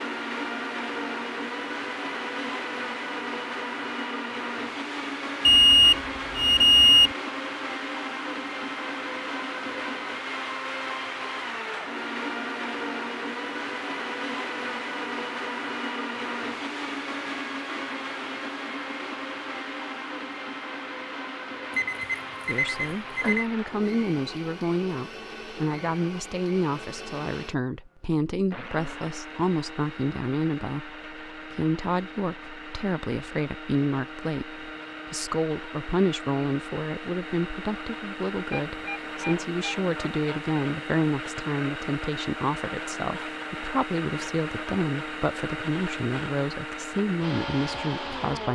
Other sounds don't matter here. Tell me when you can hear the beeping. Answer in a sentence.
You can hear the beeping from 5.5 to 7.1 s, from 21.8 to 23.4 s and from 38.5 to 40.2 s.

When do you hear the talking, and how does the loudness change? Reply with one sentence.
You can hear the talking from 22.4 to 48.4 s, at a steady volume.